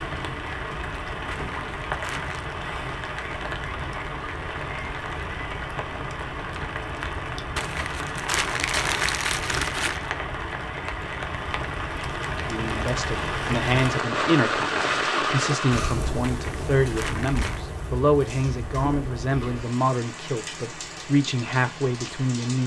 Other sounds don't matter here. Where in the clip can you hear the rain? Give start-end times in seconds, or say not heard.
0.0-22.6.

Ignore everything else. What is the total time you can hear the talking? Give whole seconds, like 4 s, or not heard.
10 s.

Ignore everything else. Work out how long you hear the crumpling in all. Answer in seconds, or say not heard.
5 s.